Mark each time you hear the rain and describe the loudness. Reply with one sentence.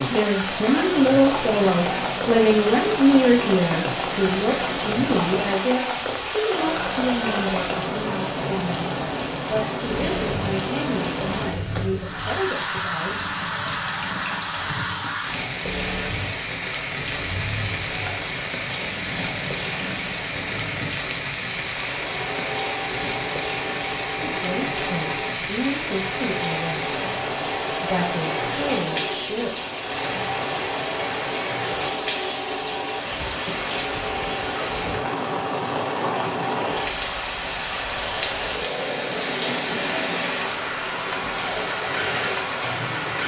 You can hear the rain from 0.0 to 43.2 s, at a steady volume.